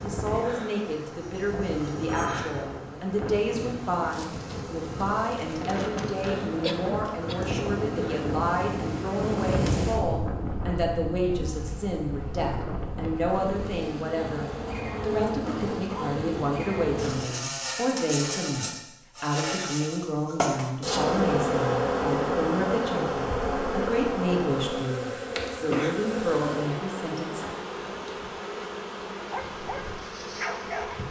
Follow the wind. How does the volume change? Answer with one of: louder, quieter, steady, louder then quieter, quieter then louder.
louder then quieter.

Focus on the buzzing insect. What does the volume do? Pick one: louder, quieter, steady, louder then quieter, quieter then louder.
louder then quieter.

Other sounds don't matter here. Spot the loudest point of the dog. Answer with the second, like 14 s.
31 s.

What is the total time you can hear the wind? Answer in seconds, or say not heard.
17 s.